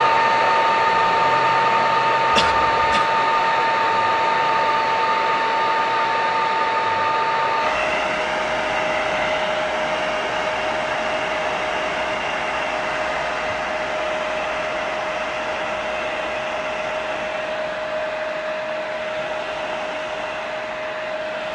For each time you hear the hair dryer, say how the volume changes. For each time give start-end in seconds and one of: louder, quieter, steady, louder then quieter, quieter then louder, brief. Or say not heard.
0.0-21.5 quieter.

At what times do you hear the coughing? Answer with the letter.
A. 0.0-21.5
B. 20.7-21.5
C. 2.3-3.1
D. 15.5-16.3
C.